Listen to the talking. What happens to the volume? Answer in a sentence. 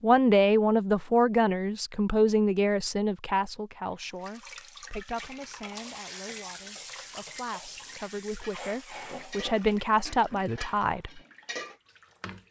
The volume of the talking goes down, then up.